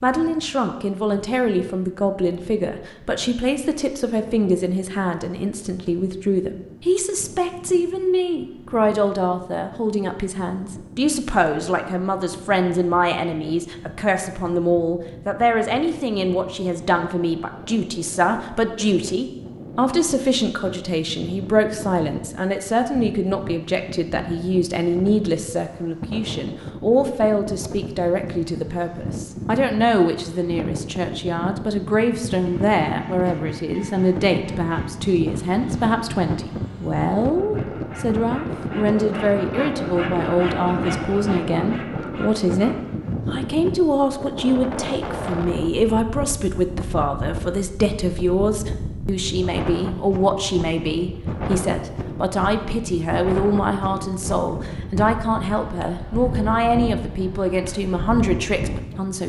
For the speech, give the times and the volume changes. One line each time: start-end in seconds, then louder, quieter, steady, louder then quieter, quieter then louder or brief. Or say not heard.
0.0-59.2 steady.